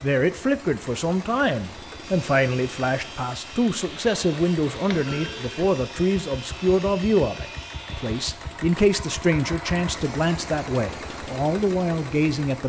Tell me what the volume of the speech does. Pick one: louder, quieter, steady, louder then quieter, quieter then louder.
steady.